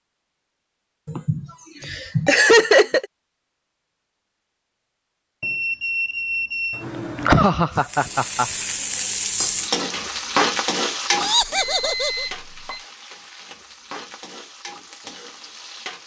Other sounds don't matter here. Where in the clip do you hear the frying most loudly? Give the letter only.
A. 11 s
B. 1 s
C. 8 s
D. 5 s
A.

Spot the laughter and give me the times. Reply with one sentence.
The laughter can be heard from 1.1 to 3.0 s, from 6.8 to 8.5 s and from 11.2 to 12.2 s.